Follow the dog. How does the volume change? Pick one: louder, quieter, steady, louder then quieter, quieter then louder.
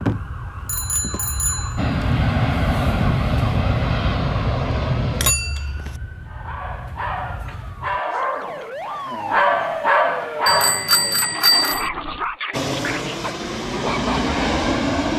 louder then quieter.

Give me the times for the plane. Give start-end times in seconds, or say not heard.
1.8-5.3, 12.5-15.1.